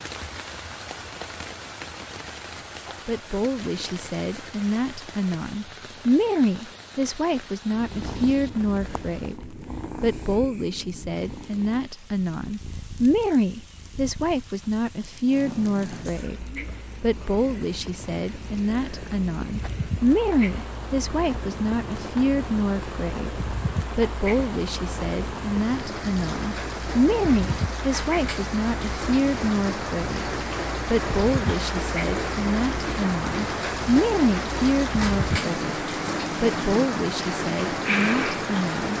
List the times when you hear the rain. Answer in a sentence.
The rain can be heard from 0.0 to 38.9 s.